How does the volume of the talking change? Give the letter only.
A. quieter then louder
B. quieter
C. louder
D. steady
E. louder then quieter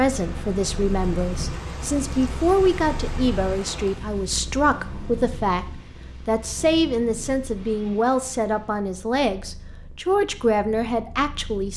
D.